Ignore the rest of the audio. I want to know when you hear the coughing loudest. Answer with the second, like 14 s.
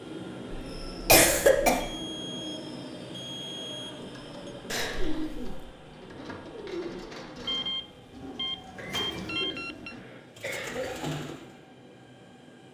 1 s.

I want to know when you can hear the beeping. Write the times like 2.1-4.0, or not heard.
1.8-4.5, 7.5-9.9.